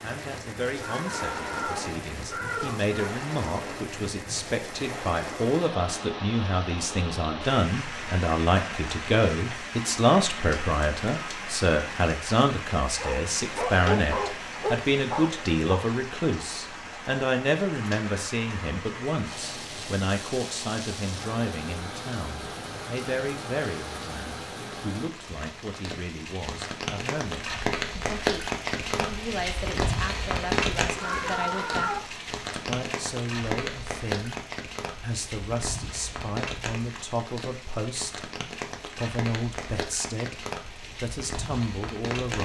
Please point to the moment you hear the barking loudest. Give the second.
14 s.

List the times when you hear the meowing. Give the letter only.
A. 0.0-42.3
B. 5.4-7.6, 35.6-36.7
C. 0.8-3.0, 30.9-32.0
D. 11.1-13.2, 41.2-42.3
C.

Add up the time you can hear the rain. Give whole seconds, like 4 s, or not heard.
42 s.